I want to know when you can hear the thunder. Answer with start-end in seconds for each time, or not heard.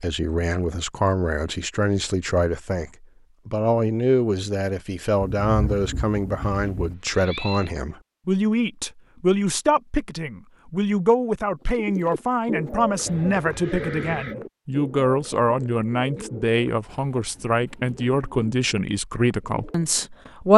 5.2-7.0.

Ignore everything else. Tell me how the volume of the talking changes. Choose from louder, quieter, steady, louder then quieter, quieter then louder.
steady.